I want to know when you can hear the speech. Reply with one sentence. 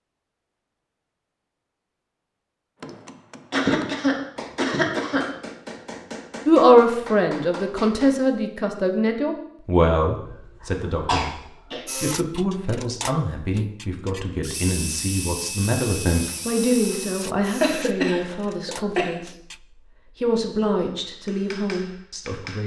You can hear the speech from 6.5 to 11.3 s, from 11.9 to 19.3 s and from 20.2 to 22.6 s.